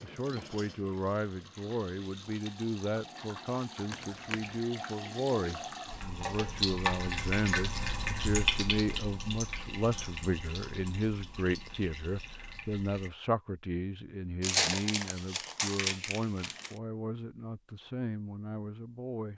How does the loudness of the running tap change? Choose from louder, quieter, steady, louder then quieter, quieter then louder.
louder then quieter.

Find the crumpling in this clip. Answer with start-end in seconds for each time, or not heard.
3.9-4.4, 14.4-16.8.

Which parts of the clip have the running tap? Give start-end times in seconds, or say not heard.
0.0-13.1.